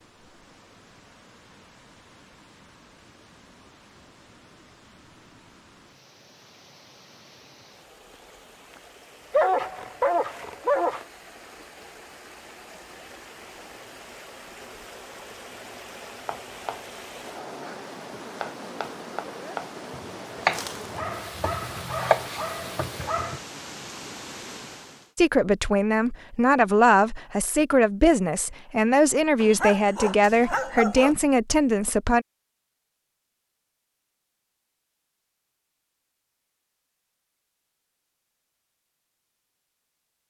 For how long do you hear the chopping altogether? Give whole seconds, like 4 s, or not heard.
7 s.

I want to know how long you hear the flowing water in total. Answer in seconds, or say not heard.
25 s.